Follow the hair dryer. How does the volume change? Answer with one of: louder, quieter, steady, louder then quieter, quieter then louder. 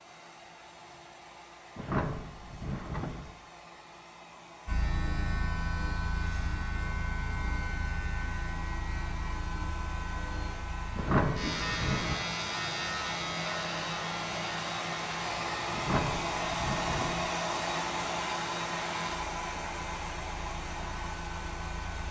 louder.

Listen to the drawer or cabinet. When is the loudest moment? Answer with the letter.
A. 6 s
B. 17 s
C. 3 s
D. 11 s
D.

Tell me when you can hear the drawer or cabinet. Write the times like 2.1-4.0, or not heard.
1.8-3.3, 10.9-12.2, 15.7-17.3.